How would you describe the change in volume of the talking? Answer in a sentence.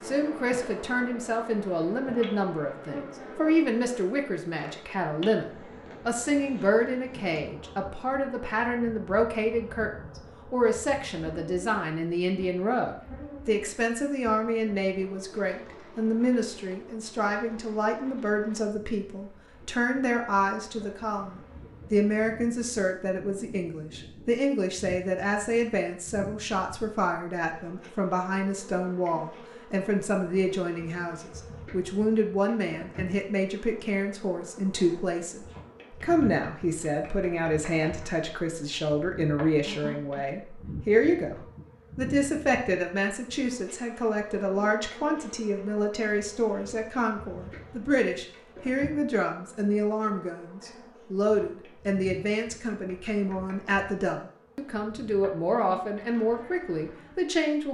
The loudness of the talking stays about the same.